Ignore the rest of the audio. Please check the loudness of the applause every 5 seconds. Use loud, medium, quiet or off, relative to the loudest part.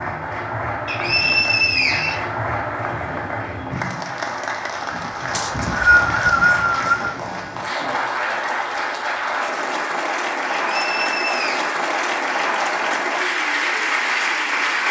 medium, loud, loud.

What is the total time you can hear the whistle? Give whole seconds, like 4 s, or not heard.
4 s.